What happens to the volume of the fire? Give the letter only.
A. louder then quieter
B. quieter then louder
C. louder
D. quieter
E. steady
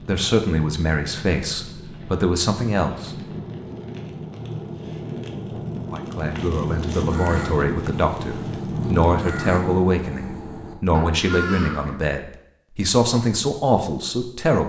C.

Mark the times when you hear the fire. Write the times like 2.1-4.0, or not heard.
0.0-9.8.